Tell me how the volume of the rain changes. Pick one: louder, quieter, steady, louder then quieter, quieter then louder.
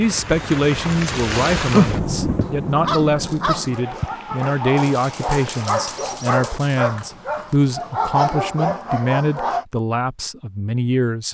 louder then quieter.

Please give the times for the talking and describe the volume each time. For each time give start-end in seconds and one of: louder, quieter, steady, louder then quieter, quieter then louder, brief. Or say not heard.
0.0-11.2 steady.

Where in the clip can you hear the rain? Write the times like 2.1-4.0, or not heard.
0.0-6.0.